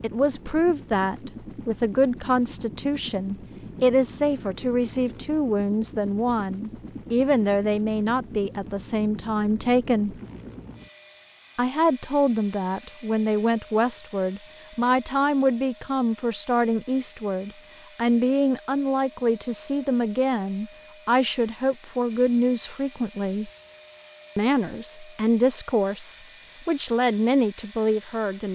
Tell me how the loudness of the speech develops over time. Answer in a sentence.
The loudness of the speech stays about the same.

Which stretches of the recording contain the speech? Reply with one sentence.
The speech can be heard from 0.0 to 10.2 s, from 11.6 to 23.5 s and from 24.4 to 28.5 s.